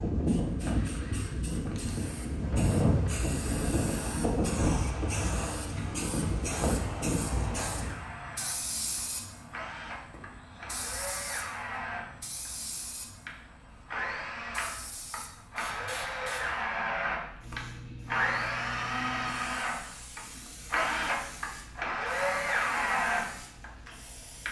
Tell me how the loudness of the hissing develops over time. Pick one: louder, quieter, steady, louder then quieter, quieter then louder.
quieter.